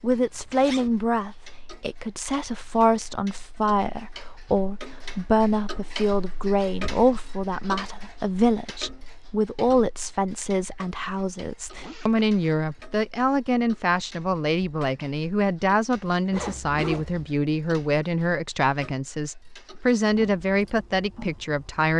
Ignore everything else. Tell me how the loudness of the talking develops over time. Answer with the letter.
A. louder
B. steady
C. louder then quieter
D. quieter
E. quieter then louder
B.